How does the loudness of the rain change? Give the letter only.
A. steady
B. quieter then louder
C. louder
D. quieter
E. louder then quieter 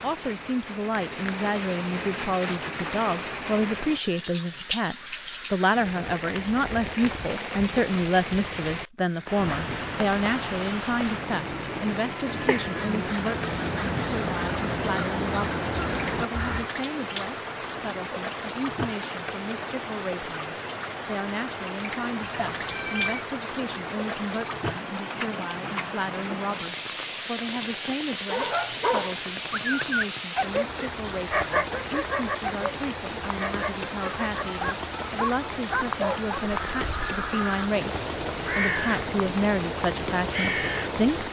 A.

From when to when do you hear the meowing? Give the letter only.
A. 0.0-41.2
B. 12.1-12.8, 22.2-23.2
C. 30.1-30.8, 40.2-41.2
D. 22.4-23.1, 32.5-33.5
B.